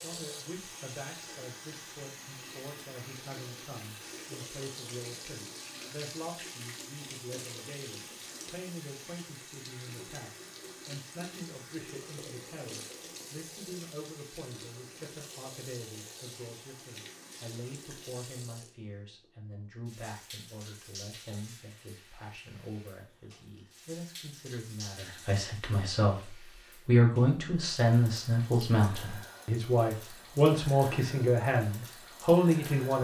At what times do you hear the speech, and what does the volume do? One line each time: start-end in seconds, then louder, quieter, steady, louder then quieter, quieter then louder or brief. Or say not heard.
0.0-33.0 louder.